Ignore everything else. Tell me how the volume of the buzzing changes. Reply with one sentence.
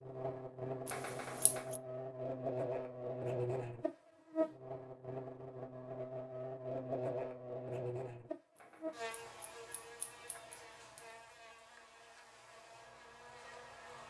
The volume of the buzzing goes down.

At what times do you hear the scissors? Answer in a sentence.
You can hear the scissors from 0.8 to 1.8 s and from 8.6 to 11.1 s.